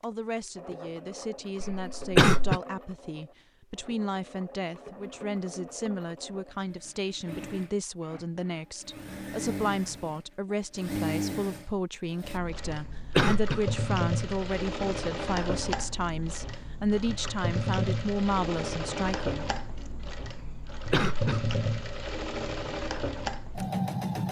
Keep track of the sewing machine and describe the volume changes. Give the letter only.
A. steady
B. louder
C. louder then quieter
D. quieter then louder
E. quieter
B.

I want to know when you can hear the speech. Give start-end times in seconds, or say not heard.
0.0-19.5.